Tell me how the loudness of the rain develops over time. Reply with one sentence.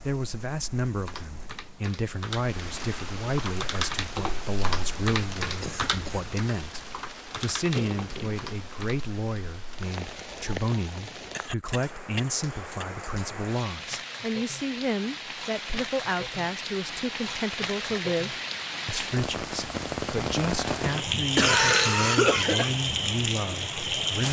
The volume of the rain goes up.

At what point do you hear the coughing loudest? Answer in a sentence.
The loudest moment of the coughing is at 22 seconds.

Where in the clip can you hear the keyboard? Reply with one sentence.
You can hear the keyboard from 0.8 to 9.0 s.